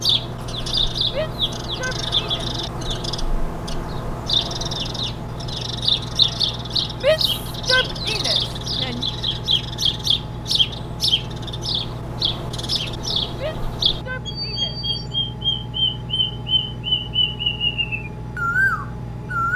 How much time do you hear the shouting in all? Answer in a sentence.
You can hear the shouting for 5 seconds altogether.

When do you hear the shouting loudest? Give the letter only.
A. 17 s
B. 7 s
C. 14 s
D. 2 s
B.